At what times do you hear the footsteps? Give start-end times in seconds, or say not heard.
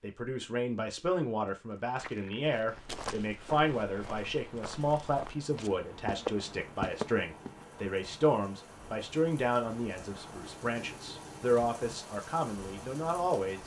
1.4-7.7.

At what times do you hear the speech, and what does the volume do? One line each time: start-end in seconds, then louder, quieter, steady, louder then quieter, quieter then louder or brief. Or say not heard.
0.0-13.6 steady.